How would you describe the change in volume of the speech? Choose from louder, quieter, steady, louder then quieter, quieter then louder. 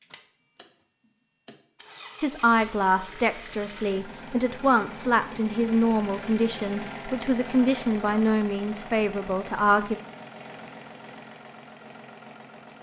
steady.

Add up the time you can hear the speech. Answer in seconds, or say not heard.
8 s.